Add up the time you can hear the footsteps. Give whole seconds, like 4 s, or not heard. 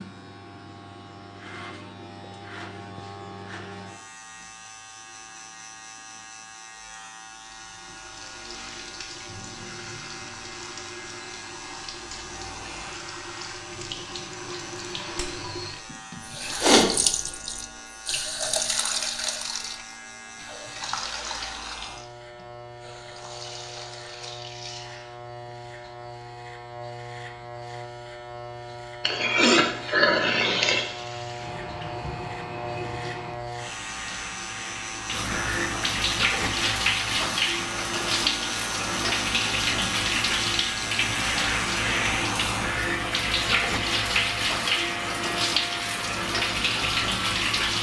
not heard.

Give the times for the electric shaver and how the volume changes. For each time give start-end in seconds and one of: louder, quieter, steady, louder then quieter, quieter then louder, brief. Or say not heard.
0.0-47.7 louder.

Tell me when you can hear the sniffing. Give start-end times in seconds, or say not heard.
15.9-16.9, 29.0-30.9.